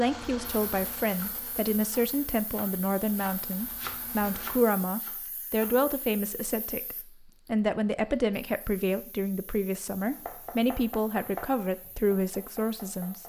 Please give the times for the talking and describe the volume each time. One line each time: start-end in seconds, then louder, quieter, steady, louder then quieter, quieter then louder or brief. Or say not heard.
0.0-13.2 steady.